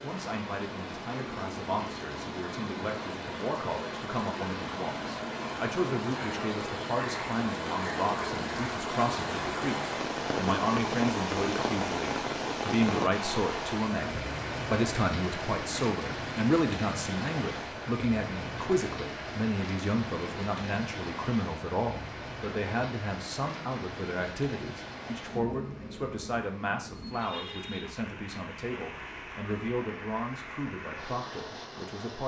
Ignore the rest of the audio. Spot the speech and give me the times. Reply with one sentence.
The speech can be heard from 0.0 to 32.2 s.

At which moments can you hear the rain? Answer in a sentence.
The rain can be heard from 0.0 to 32.2 s.